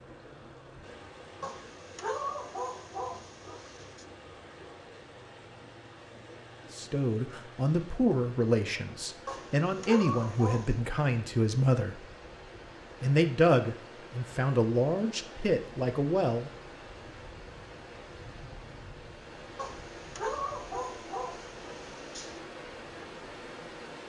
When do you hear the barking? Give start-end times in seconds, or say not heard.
1.4-4.0, 9.2-10.8, 19.6-22.4.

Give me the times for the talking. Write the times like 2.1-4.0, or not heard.
6.7-12.1, 13.0-16.5.